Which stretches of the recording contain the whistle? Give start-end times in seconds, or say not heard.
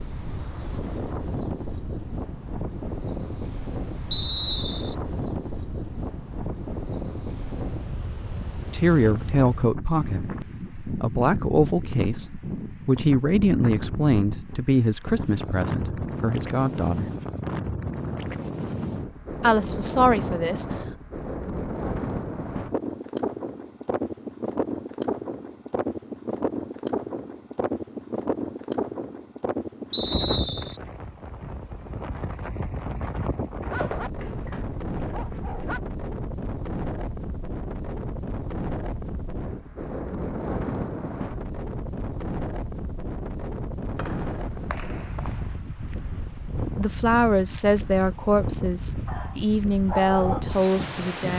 4.1-5.0, 29.9-30.8, 44.0-45.5.